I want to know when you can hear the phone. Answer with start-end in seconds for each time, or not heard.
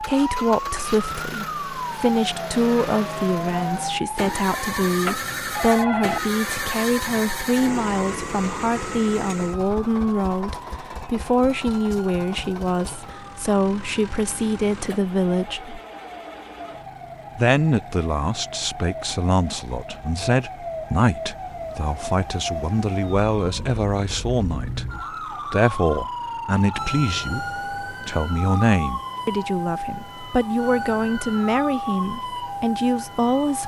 4.8-6.2.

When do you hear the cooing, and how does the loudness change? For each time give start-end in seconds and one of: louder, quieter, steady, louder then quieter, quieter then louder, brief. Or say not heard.
not heard.